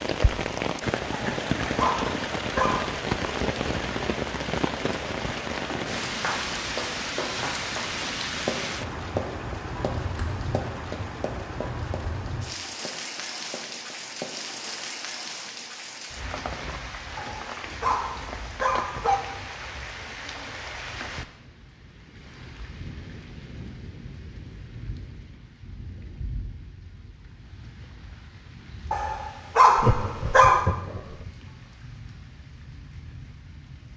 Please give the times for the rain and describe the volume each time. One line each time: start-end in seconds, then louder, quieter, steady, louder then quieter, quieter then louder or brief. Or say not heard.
0.0-33.9 quieter.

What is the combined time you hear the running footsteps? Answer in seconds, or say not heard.
9 s.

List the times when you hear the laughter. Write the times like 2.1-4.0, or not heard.
29.8-31.1.